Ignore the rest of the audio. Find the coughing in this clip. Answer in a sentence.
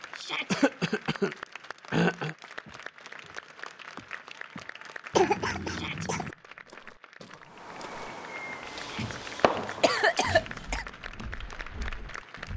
You can hear the coughing from 0.5 to 2.4 s, from 5.1 to 6.3 s and from 8.7 to 10.8 s.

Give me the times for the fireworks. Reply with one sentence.
You can hear the fireworks from 7.5 to 12.5 s.